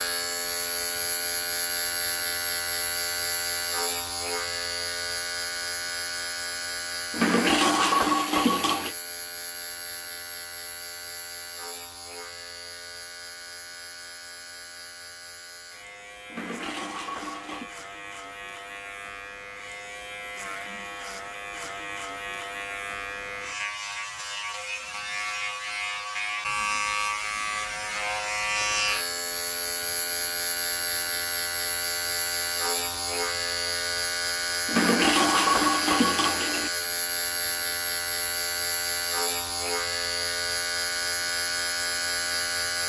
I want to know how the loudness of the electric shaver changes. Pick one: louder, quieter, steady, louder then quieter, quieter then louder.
quieter then louder.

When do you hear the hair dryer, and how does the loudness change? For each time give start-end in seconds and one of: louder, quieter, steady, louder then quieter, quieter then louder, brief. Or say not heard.
not heard.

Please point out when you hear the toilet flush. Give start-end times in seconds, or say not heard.
7.1-8.9, 16.3-17.7, 34.6-36.7.